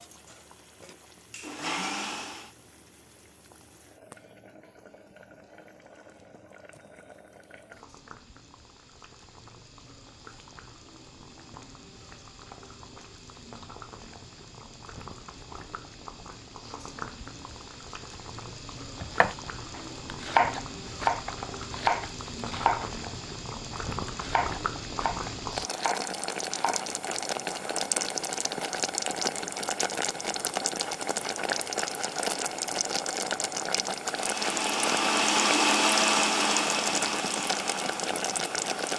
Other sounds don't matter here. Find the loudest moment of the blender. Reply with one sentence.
The loudest moment of the blender is at 36 seconds.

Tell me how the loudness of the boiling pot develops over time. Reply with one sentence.
The loudness of the boiling pot goes up.